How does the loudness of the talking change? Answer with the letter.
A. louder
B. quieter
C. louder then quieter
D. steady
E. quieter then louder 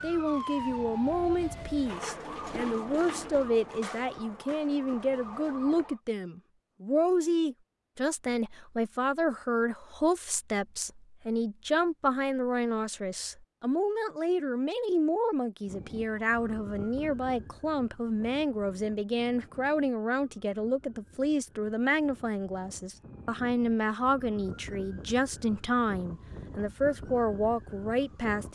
D.